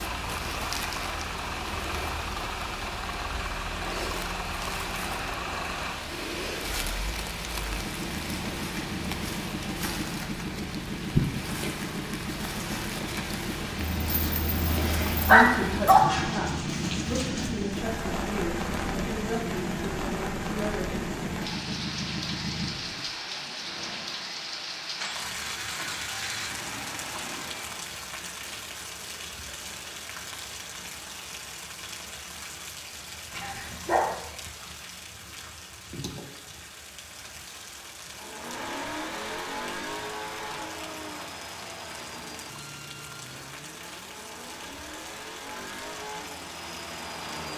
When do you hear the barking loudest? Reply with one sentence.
The volume of the barking peaks at 15 seconds.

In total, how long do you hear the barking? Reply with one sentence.
You can hear the barking for 3 seconds altogether.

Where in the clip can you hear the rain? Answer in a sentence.
The rain can be heard from 0.0 to 47.5 s.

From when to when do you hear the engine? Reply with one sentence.
You can hear the engine from 0.0 to 27.9 s and from 38.0 to 47.5 s.